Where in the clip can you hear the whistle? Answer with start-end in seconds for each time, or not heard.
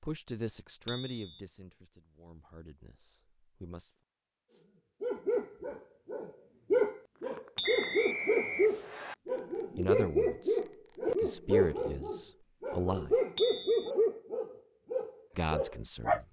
7.6-9.2.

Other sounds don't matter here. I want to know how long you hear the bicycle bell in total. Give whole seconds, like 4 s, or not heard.
2 s.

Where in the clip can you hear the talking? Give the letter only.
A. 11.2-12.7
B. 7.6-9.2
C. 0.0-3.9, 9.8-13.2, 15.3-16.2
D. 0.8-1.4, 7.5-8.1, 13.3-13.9
C.